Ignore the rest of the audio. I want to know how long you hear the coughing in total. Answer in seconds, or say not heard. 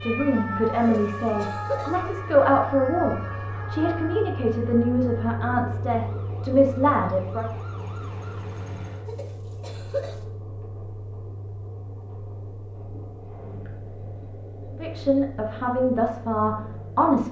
2 s.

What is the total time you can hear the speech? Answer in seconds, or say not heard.
10 s.